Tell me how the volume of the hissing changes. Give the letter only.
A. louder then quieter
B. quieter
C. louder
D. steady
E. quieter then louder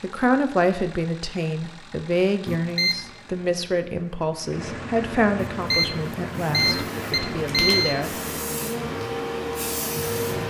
C.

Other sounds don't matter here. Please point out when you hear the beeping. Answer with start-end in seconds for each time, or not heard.
2.5-3.0, 5.3-8.0.